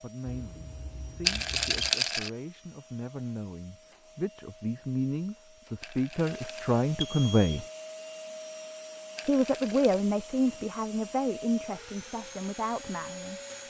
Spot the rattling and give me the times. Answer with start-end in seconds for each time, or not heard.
1.2-2.3, 5.8-6.8, 9.2-10.1.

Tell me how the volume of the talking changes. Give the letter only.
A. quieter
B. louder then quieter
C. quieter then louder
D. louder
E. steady
B.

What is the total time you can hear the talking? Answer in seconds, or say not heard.
12 s.